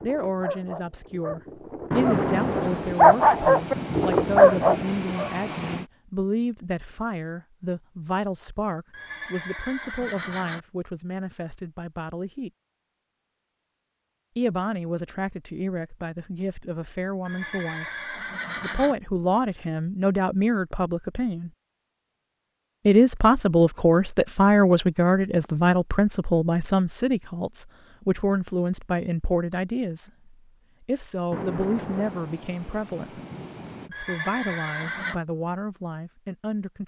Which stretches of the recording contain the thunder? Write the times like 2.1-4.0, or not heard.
1.9-5.8, 31.3-33.9.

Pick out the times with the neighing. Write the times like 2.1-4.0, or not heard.
8.9-10.7, 17.2-18.9, 33.9-35.2.